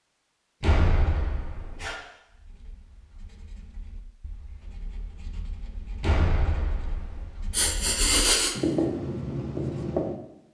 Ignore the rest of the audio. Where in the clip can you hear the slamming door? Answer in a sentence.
You can hear the slamming door from 0.6 to 1.9 s and from 6.0 to 7.2 s.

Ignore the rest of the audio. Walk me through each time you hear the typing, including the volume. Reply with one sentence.
The typing can't be heard in this clip.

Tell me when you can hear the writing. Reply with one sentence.
The writing can be heard from 2.3 to 10.2 s.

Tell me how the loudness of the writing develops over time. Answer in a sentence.
The volume of the writing goes up.